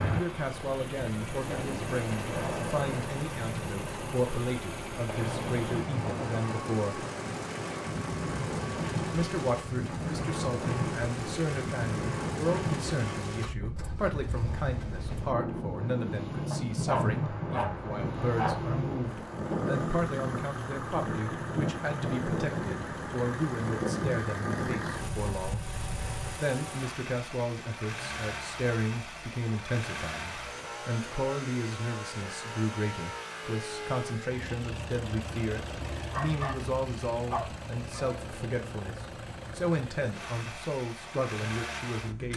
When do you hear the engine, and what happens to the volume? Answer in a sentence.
The engine can be heard from 0.0 to 42.3 s, at a steady volume.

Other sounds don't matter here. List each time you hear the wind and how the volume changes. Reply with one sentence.
You can hear the wind from 0.0 to 26.4 s, at a steady volume.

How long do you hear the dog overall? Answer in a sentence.
The dog can be heard for 4 seconds in total.